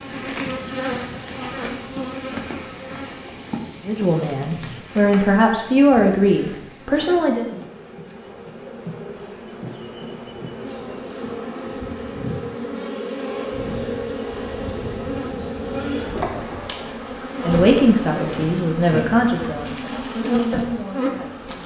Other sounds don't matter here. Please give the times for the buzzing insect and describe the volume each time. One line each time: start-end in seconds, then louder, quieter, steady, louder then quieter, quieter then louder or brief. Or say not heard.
0.0-21.6 quieter then louder.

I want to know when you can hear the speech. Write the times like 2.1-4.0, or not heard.
3.9-7.5, 17.4-21.6.